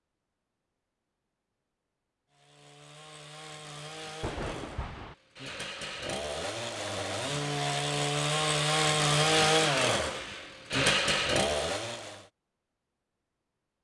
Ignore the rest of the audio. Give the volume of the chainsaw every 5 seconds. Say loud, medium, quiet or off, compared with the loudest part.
quiet, loud, loud.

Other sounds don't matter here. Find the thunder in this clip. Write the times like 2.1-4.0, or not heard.
4.2-5.2.